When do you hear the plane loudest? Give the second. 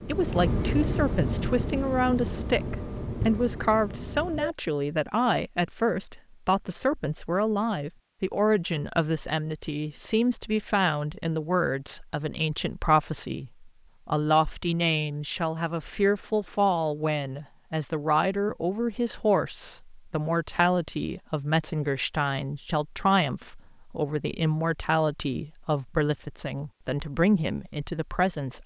1 s.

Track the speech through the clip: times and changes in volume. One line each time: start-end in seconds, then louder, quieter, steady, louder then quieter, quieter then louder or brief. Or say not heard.
0.1-28.6 steady.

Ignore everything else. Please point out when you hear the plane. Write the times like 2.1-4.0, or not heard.
0.0-4.5.